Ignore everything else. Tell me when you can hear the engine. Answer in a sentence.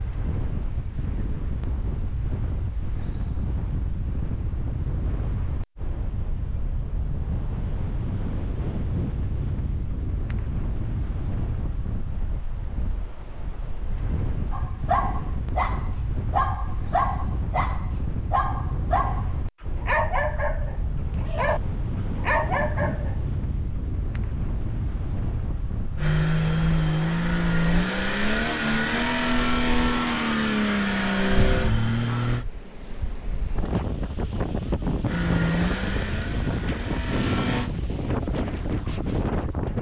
You can hear the engine from 25.9 to 32.5 s and from 35.0 to 37.7 s.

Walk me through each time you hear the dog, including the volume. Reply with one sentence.
The dog can be heard from 14.5 to 23.1 s, at a steady volume.